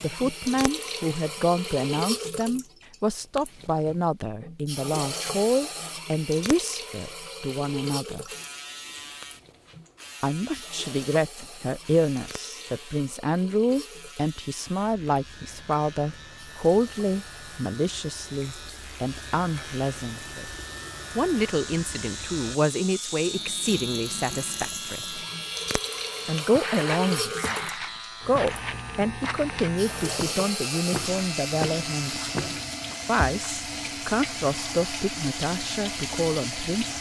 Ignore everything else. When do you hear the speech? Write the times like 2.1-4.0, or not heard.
0.0-8.2, 10.2-20.5, 21.1-25.2, 26.2-36.9.